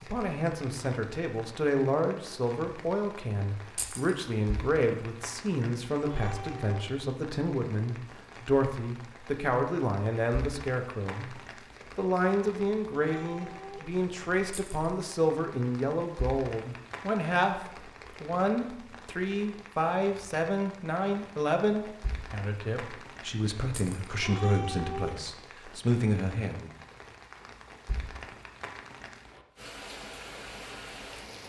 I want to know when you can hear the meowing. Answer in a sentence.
You can hear the meowing from 6.0 to 6.9 s, from 12.9 to 13.9 s and from 24.1 to 25.2 s.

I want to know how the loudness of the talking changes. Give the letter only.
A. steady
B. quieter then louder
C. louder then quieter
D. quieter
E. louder
A.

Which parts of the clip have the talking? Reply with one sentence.
You can hear the talking from 0.0 to 26.7 s.